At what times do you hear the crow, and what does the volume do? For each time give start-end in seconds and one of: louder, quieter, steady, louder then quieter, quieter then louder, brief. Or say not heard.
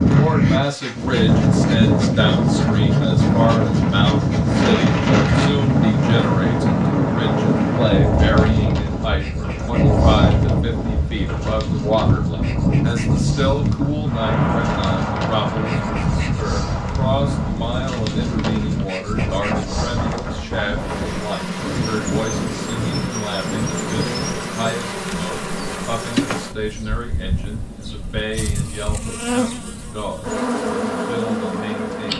not heard.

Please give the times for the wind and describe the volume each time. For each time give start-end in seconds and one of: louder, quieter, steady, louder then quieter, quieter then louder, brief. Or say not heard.
0.0-24.5 quieter.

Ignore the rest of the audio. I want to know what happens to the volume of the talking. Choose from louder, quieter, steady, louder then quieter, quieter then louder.
quieter.